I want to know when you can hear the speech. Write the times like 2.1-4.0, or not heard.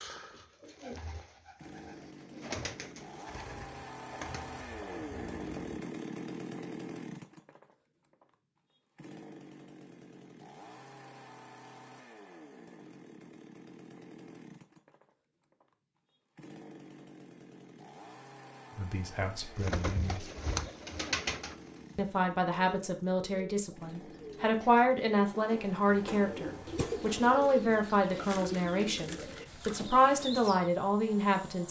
18.8-20.3, 21.9-31.6.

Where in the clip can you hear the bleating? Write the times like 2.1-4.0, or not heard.
not heard.